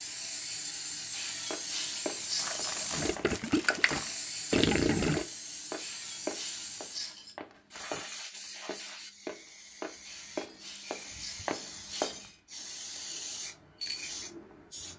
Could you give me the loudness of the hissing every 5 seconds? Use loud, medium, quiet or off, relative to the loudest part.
loud, medium, medium.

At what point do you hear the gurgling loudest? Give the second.
5 s.